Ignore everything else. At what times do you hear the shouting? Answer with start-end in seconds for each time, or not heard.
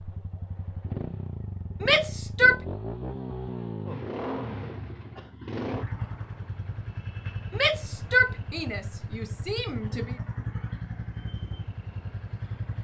1.8-2.6, 7.5-10.2.